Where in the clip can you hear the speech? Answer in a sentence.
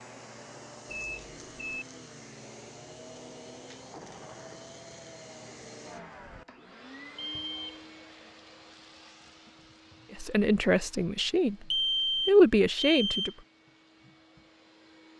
The speech can be heard from 10.2 to 11.6 s and from 12.2 to 13.3 s.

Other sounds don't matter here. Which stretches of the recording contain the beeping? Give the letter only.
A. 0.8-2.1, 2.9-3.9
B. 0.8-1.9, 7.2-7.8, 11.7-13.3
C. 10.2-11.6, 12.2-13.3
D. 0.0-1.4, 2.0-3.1
B.